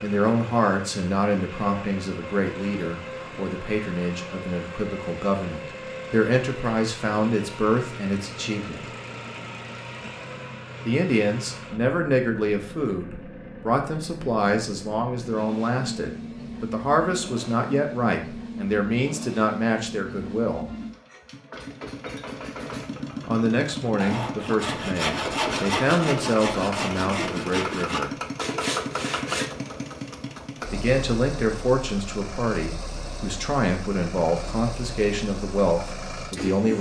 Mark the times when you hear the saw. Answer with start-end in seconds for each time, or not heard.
23.9-29.5.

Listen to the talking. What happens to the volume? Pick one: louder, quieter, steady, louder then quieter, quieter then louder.
steady.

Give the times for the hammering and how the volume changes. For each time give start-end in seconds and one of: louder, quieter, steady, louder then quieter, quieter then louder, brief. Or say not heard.
not heard.